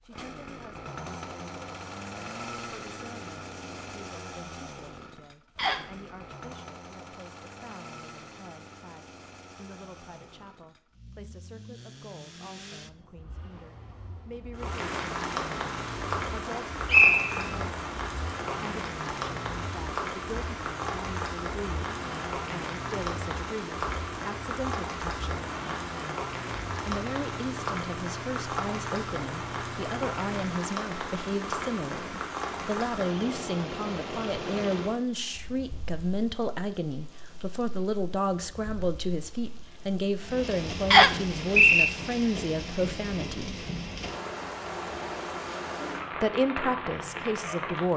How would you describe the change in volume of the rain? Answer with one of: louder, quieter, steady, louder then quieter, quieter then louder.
quieter then louder.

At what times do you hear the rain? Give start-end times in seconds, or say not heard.
14.6-47.9.